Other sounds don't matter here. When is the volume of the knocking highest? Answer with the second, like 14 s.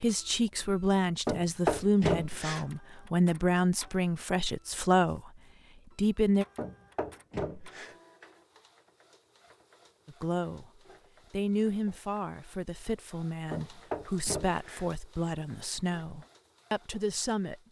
2 s.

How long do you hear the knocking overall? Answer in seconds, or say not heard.
4 s.